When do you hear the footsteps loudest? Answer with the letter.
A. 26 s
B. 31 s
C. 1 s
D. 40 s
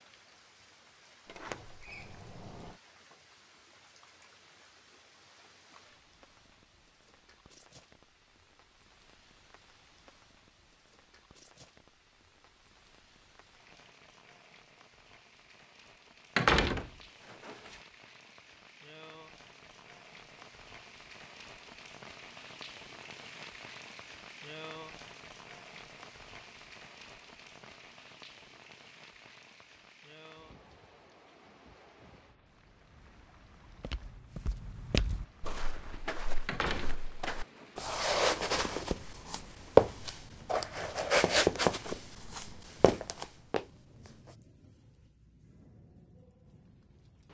D.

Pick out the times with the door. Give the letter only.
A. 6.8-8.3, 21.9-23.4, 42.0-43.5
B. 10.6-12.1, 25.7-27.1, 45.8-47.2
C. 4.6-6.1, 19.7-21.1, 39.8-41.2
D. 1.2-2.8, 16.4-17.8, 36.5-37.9
D.